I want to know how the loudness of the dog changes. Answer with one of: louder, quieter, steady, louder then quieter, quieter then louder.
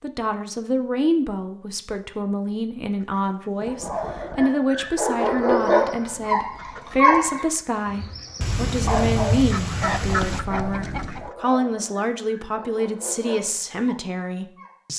louder then quieter.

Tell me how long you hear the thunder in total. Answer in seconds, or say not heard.
2 s.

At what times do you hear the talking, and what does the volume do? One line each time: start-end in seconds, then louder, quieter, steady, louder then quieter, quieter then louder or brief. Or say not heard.
0.0-14.9 steady.